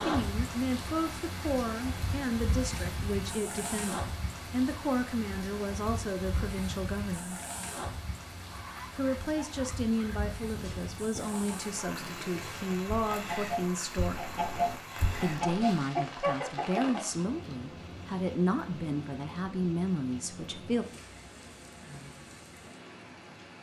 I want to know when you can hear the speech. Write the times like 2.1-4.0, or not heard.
0.0-7.4, 8.9-14.2, 15.2-20.9.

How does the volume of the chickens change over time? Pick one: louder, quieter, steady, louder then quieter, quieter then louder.
louder.